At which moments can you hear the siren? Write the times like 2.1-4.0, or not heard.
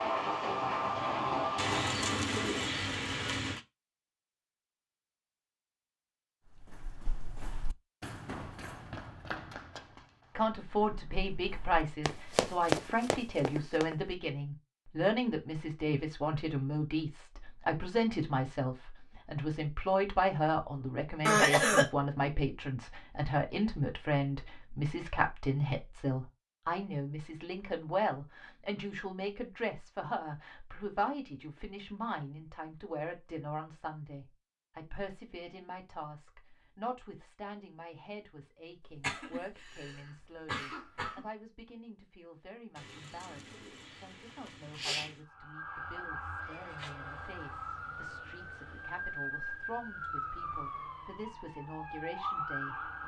45.2-53.0.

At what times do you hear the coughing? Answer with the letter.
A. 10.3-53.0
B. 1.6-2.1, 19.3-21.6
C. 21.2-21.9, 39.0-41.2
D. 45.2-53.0
C.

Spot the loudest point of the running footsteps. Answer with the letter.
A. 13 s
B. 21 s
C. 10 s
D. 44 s
A.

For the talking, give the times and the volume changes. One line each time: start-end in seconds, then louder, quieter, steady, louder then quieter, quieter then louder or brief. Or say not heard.
10.3-53.0 quieter.